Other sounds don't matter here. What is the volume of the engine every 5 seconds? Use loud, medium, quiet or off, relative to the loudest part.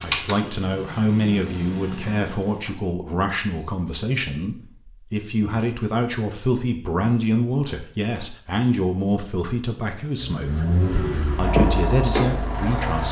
medium, off, loud.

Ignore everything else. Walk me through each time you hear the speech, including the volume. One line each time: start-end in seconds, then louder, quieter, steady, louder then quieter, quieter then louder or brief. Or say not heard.
0.0-10.7 steady
11.3-13.0 brief.